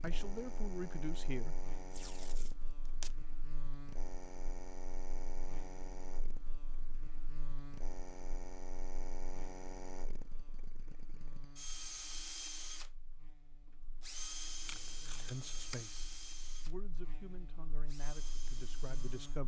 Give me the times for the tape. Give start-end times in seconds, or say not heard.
1.9-3.1, 14.7-15.8.